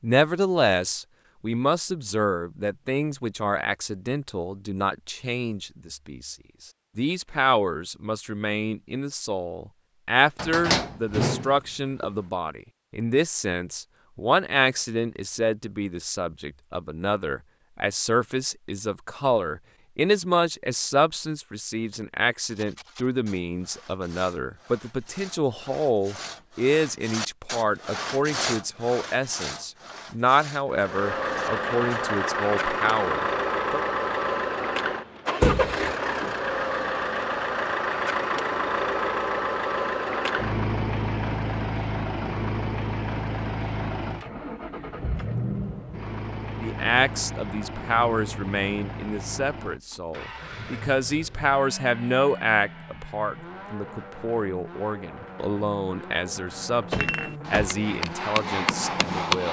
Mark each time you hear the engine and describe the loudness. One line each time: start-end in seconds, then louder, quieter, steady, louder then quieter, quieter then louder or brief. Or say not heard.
30.6-59.4 quieter.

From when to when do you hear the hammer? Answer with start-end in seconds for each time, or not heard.
56.9-59.4.